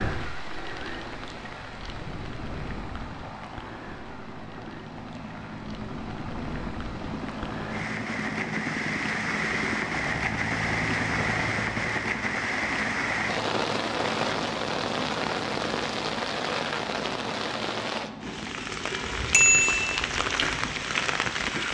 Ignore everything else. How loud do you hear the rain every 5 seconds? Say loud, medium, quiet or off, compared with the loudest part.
medium, medium, loud, loud, loud.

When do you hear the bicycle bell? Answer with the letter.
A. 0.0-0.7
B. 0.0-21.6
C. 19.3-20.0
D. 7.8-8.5
C.